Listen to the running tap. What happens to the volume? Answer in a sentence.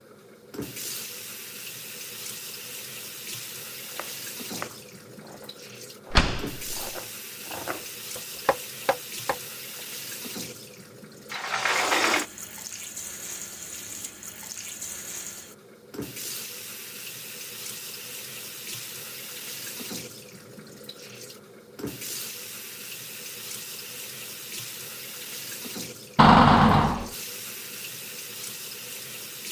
The loudness of the running tap stays about the same.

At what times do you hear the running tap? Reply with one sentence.
You can hear the running tap from 0.0 to 29.4 s.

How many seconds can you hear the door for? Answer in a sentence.
The door can be heard for 3 seconds in total.